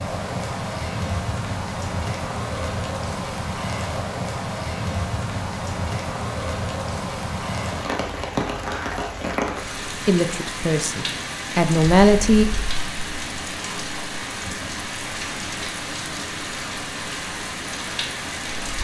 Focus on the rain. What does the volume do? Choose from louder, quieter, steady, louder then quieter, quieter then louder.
steady.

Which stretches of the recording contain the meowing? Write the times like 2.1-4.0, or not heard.
8.6-9.2.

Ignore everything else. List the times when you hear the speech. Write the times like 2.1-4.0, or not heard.
9.8-12.4.